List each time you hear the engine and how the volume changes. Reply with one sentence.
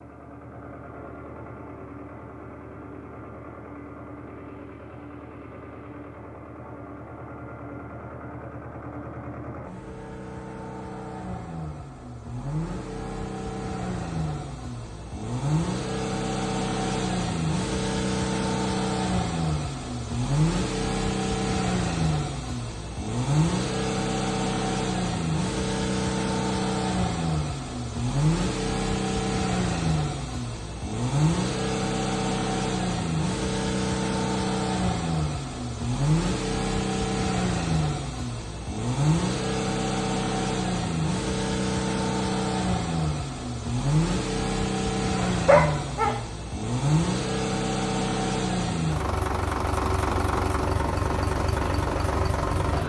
You can hear the engine from 0.0 to 52.8 s, getting louder.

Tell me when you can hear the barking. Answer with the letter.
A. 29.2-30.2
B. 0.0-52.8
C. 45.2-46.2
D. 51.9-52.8
C.